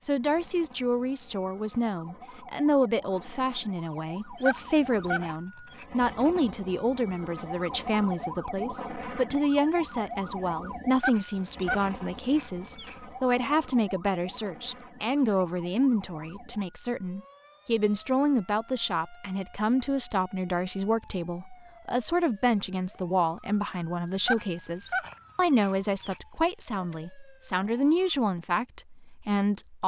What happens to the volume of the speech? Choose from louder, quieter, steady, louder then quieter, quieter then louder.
steady.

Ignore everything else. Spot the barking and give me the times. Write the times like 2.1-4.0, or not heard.
4.4-5.8, 10.9-13.0, 24.2-26.2.